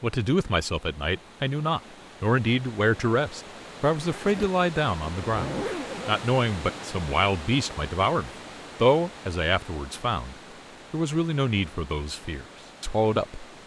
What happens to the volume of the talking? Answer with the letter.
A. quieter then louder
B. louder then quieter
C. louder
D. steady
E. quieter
D.